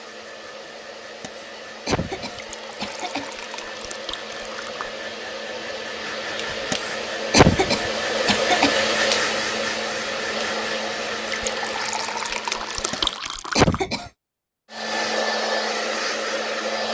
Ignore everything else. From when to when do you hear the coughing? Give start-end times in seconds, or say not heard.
1.2-3.3, 6.7-8.7, 12.9-14.1.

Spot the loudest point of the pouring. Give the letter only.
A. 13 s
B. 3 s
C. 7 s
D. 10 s
A.